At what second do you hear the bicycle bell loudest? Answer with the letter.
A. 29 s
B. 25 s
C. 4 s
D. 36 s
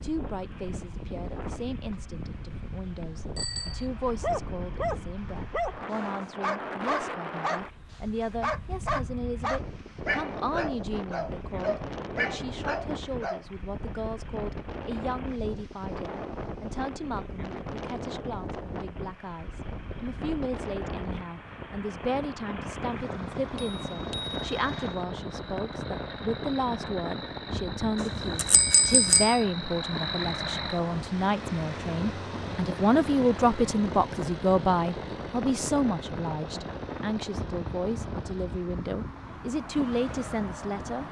A.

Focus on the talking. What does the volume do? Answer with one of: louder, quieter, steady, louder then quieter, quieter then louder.
louder.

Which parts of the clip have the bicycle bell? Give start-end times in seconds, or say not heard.
3.4-3.9, 23.6-25.1, 28.0-29.4.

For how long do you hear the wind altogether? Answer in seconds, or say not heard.
41 s.